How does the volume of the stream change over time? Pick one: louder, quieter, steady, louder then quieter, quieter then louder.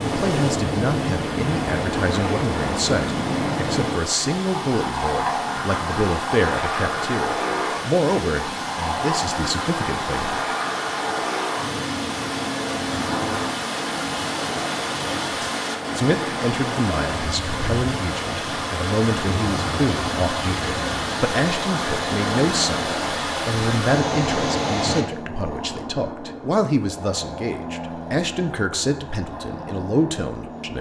louder.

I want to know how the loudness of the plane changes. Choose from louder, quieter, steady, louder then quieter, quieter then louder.
quieter.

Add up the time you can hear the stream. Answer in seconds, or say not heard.
25 s.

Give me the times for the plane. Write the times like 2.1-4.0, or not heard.
0.0-30.7.